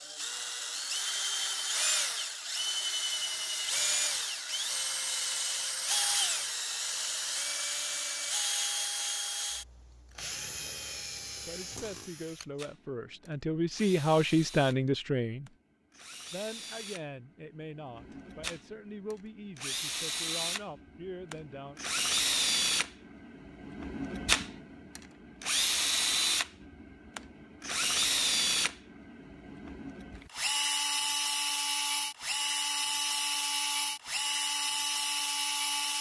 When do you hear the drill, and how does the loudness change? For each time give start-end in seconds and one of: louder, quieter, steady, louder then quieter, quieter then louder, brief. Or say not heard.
0.0-35.9 quieter then louder.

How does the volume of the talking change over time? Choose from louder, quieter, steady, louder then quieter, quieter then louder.
louder then quieter.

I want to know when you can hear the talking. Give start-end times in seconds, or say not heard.
11.4-15.5, 16.3-21.8.